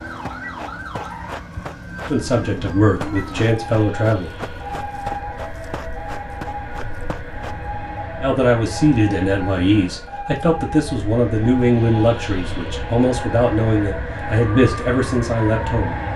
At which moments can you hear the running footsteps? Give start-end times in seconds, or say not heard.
0.1-7.5.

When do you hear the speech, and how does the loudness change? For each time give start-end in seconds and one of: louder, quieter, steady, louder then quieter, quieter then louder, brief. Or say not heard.
2.0-4.3 brief
8.2-16.0 steady.